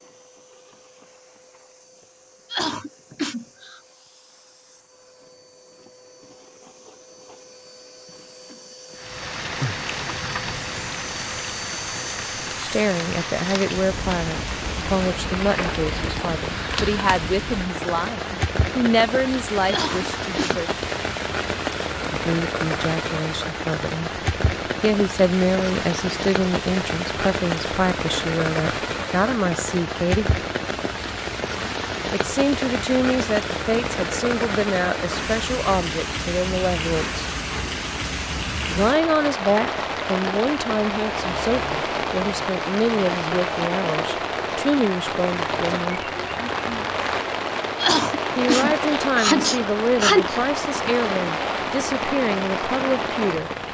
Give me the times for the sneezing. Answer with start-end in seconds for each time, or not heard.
2.5-3.8, 19.6-20.6, 47.8-50.4.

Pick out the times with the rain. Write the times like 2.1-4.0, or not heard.
8.9-53.6.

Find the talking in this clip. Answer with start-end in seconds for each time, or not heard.
12.6-20.7, 22.1-24.1, 24.8-30.4, 32.1-37.2, 38.7-46.0, 48.4-53.5.